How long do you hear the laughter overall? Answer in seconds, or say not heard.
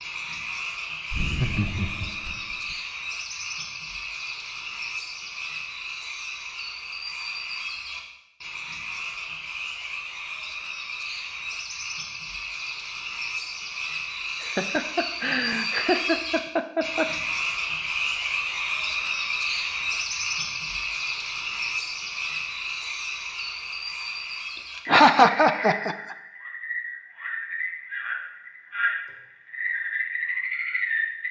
6 s.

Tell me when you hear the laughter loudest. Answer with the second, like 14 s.
25 s.